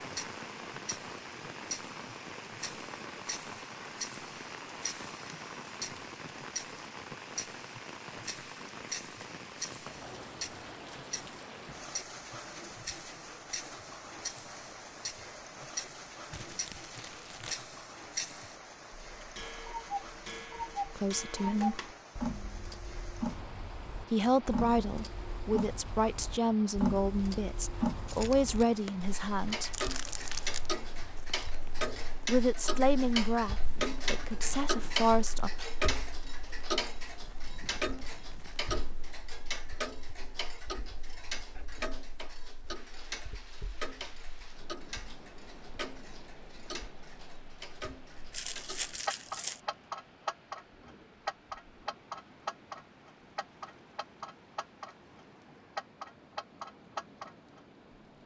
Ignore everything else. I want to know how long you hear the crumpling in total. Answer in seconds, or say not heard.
5 s.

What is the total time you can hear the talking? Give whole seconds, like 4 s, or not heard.
10 s.